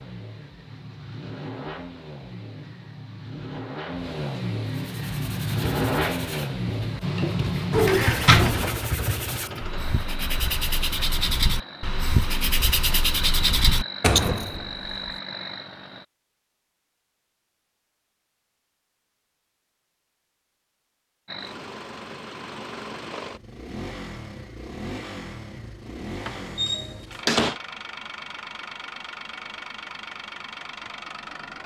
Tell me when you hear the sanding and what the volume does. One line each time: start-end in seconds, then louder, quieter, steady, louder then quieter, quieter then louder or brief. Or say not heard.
4.8-14.4 louder.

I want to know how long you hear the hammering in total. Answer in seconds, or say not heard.
not heard.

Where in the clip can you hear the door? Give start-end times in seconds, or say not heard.
7.7-8.7, 14.0-15.1, 26.2-27.6.